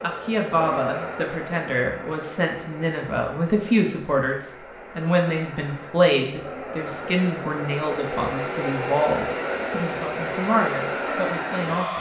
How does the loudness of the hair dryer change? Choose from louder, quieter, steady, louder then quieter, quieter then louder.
quieter then louder.